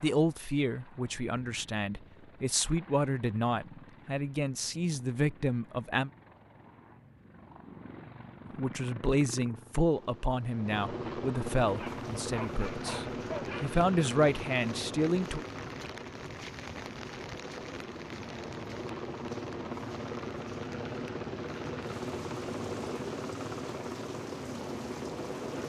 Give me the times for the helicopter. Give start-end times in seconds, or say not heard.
0.0-25.6.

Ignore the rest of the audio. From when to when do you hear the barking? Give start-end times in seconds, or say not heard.
11.7-13.8.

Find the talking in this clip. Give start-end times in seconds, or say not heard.
0.0-6.1, 8.6-15.4.